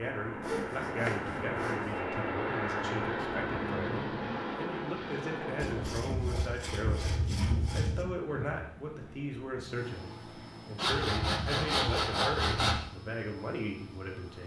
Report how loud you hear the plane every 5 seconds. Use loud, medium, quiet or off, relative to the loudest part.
loud, medium, quiet.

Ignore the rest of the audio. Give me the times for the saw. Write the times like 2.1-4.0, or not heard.
0.4-1.9, 5.6-8.1, 10.8-12.8.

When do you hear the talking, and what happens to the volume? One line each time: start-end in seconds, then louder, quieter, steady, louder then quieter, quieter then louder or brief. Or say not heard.
0.0-14.4 steady.